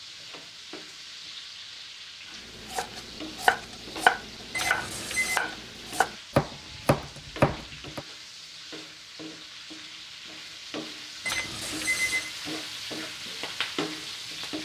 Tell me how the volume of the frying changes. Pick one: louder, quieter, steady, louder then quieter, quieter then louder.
louder.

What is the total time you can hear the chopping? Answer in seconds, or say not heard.
5 s.